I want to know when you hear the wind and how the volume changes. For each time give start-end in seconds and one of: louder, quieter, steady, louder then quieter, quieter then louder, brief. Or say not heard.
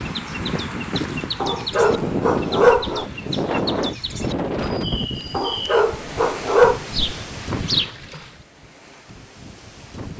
0.0-10.1 quieter.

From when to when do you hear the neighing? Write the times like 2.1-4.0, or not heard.
not heard.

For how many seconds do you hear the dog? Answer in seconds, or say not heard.
3 s.